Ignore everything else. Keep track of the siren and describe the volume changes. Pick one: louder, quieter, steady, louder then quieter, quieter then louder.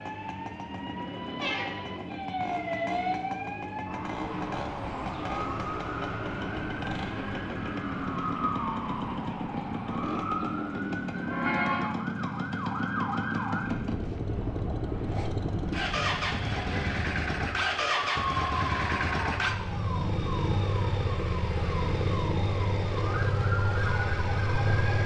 steady.